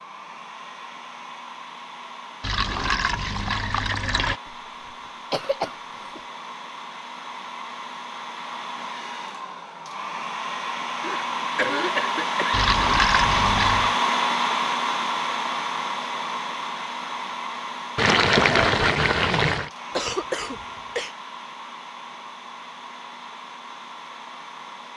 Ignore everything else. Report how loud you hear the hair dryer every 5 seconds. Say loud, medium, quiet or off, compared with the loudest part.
quiet, quiet, loud, medium, quiet.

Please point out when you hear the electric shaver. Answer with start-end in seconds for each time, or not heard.
not heard.